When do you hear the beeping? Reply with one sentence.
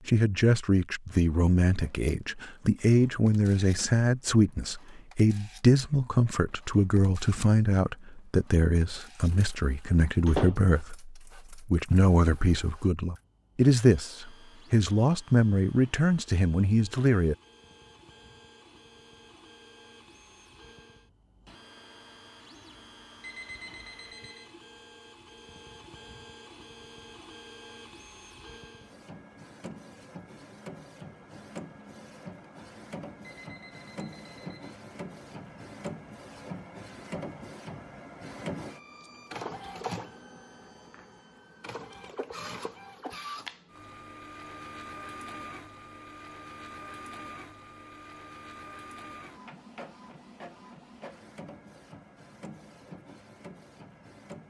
The beeping can be heard from 23.2 to 24.6 s and from 33.2 to 34.8 s.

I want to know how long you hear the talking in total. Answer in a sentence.
You can hear the talking for 17 seconds altogether.